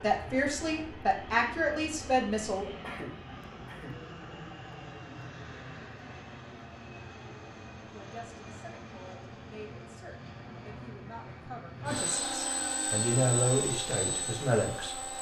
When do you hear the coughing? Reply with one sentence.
You can hear the coughing from 2.8 to 4.2 s.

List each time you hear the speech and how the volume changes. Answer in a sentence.
The speech can be heard briefly from 0.0 to 2.7 s; and from 7.9 to 14.9 s, getting louder.